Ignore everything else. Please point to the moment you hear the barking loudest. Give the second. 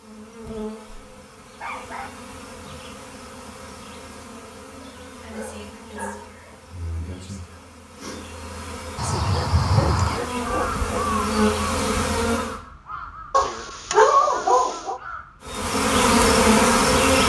14 s.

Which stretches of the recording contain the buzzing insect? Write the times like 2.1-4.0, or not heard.
0.0-12.6, 15.4-17.2.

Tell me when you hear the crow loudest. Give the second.
10 s.